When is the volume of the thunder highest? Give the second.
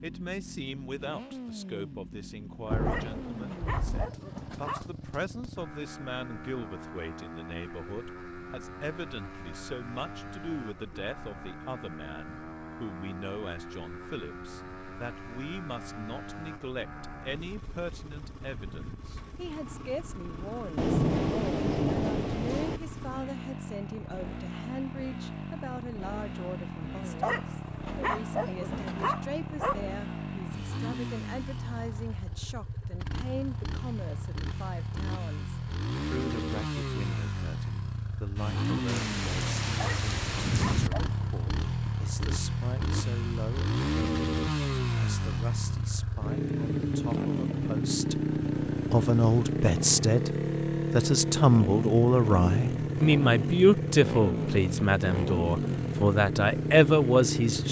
21 s.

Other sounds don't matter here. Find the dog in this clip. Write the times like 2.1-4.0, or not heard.
2.6-4.8, 27.0-29.8, 39.6-41.1.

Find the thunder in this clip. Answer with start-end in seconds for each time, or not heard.
2.7-4.1, 20.8-22.8, 38.9-40.9.